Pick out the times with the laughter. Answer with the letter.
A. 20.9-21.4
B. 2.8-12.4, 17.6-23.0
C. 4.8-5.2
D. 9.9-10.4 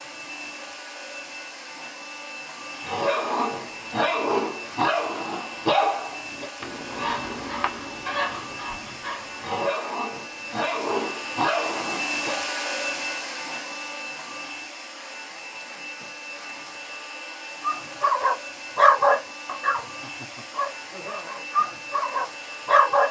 A.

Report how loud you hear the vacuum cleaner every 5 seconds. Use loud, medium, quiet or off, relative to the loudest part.
medium, medium, loud, medium, medium.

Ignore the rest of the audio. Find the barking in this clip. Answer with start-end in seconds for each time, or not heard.
2.8-12.4, 17.6-23.0.